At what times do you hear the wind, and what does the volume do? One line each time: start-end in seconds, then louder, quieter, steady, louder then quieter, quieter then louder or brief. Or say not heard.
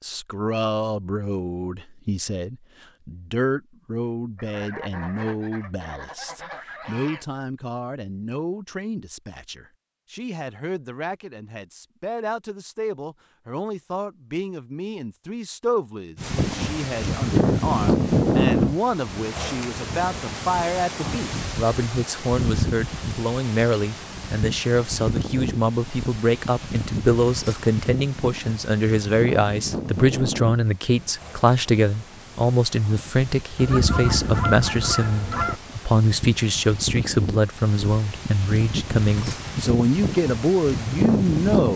16.1-41.7 quieter then louder.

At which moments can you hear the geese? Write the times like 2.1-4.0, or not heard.
4.3-7.2, 33.5-35.6.